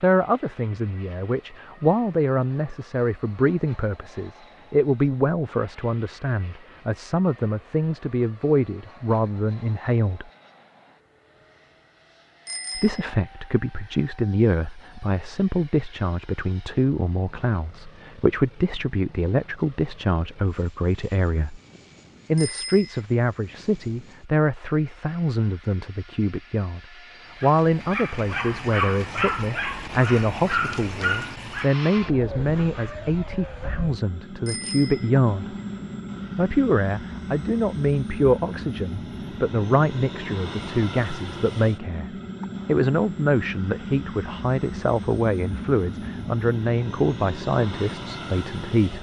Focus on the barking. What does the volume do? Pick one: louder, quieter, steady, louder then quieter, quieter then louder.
quieter.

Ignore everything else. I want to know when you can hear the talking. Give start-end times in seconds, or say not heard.
0.0-10.2, 12.8-21.6, 22.3-26.8, 27.4-35.5, 36.4-48.9.